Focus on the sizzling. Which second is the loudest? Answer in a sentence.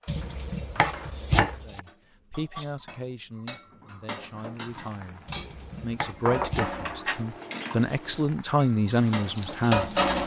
The loudest moment of the sizzling is at 10 seconds.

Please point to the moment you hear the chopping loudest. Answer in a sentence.
The volume of the chopping peaks at 1 second.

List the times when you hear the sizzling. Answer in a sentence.
The sizzling can be heard from 4.2 to 10.2 s.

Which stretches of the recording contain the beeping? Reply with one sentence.
You can't hear the beeping here.